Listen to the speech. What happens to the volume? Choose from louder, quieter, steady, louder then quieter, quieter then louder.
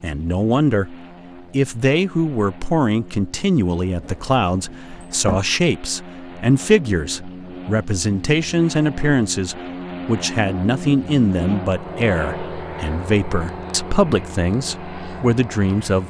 steady.